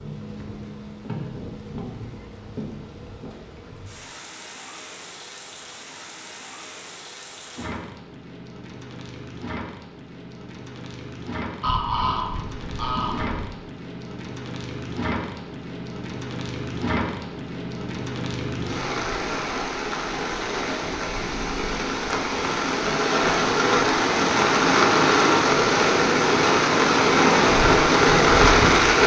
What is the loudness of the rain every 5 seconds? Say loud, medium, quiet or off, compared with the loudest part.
quiet, quiet, quiet, quiet, medium, loud.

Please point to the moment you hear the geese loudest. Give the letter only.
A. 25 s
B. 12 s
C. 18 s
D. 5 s
B.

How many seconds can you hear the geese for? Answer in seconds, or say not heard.
2 s.